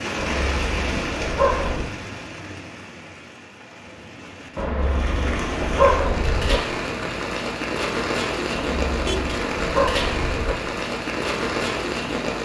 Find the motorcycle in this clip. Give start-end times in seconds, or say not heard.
not heard.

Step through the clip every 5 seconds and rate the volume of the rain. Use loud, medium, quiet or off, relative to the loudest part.
medium, loud, loud.